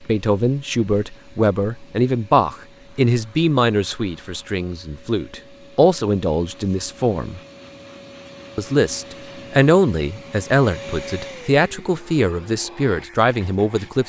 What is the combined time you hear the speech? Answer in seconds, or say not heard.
13 s.